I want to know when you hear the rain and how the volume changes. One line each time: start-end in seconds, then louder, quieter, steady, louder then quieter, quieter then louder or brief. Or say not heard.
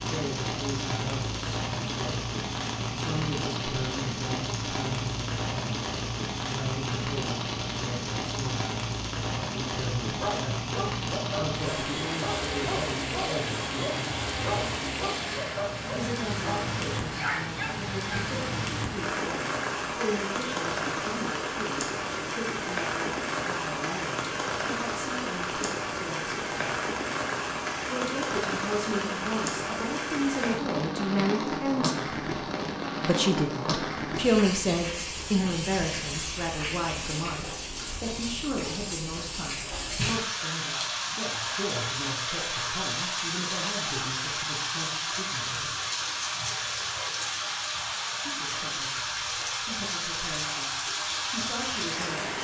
0.0-52.3 steady.